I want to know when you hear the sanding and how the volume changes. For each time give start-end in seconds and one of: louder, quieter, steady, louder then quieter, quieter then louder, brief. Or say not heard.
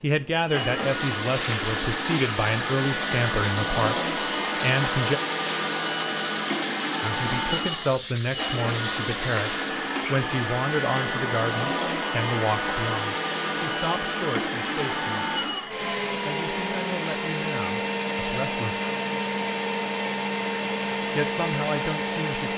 0.8-9.8 steady.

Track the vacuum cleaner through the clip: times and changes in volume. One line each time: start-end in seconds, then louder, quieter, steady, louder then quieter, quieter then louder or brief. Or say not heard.
0.2-22.5 steady.